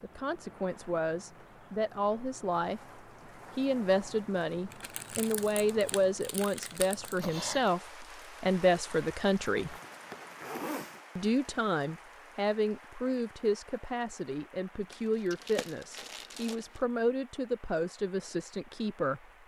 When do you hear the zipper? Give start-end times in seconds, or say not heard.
9.6-11.0.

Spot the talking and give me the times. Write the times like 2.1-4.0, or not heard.
0.0-2.8, 3.5-9.8, 11.2-19.2.